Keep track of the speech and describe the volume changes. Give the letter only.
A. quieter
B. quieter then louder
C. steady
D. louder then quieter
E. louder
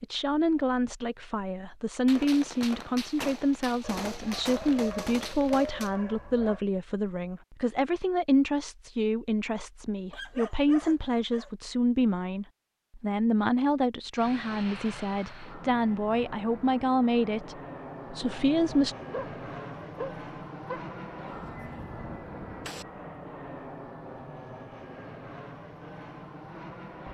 C.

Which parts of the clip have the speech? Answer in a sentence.
You can hear the speech from 0.0 to 18.9 s.